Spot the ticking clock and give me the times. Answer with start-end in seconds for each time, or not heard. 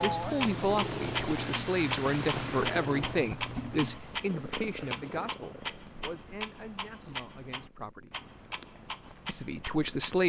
0.0-10.2.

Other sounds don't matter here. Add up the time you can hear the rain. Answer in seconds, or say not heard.
5 s.